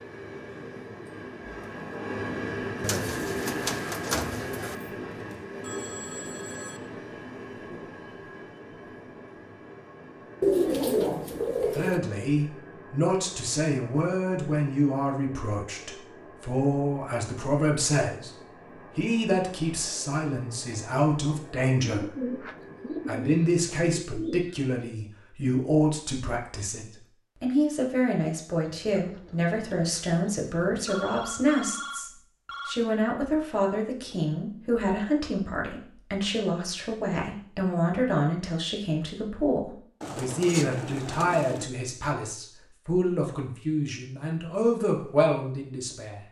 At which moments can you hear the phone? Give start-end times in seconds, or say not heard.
5.6-6.8, 30.9-32.8.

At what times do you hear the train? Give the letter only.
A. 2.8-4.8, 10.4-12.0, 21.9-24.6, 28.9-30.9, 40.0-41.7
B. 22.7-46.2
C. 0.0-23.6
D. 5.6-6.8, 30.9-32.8
C.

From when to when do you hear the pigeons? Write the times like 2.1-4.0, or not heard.
2.8-4.8, 10.4-12.0, 21.9-24.6, 28.9-30.9, 40.0-41.7.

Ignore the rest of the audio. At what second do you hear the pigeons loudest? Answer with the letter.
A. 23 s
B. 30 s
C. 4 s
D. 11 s
D.